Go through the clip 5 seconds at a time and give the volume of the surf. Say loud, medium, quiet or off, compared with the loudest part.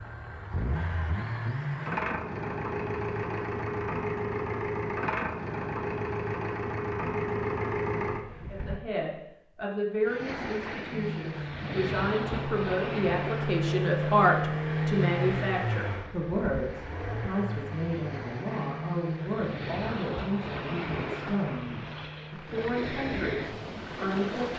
off, off, loud, medium, loud.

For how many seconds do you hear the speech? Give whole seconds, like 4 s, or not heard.
16 s.